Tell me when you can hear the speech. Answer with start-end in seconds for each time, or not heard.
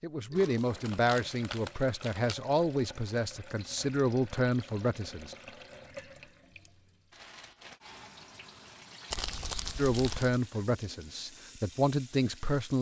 0.0-5.3, 9.8-12.7.